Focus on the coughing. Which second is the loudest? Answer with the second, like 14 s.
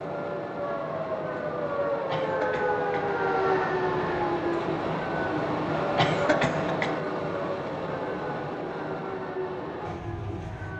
6 s.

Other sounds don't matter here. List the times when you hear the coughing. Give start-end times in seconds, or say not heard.
1.9-3.0, 5.8-7.4.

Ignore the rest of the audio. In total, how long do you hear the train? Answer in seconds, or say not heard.
11 s.